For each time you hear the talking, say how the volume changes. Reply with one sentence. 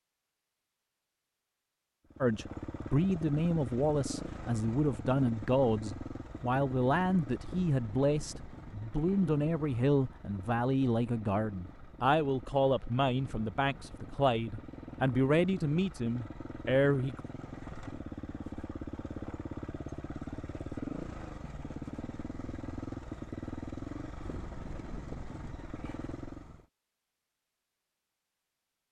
You can hear the talking from 2.2 to 17.2 s, at a steady volume.